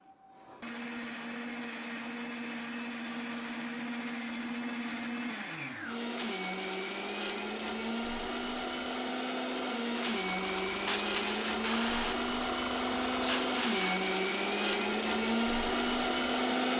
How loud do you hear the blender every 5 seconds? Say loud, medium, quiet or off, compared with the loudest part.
medium, medium, loud, loud.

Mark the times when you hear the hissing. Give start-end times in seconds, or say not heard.
9.8-14.1.